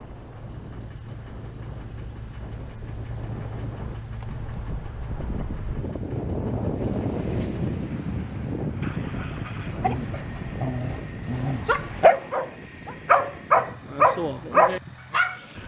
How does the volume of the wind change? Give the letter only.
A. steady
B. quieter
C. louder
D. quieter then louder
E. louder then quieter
E.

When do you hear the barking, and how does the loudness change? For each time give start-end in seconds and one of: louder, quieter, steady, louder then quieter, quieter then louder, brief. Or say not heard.
8.6-15.4 louder.